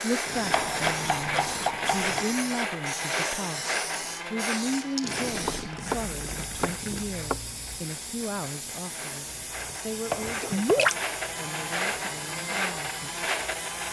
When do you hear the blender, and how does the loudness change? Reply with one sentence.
The blender can be heard from 0.0 to 13.8 s, getting quieter then louder.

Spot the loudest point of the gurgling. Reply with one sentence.
The volume of the gurgling peaks at 11 seconds.